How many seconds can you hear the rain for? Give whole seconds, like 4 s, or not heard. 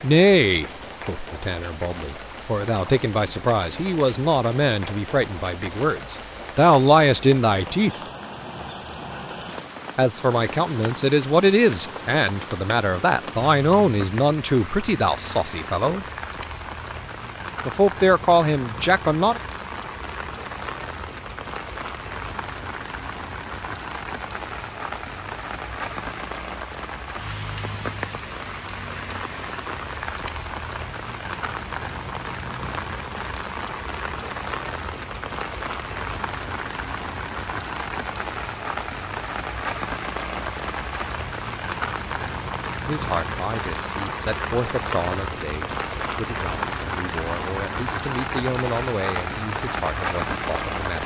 51 s.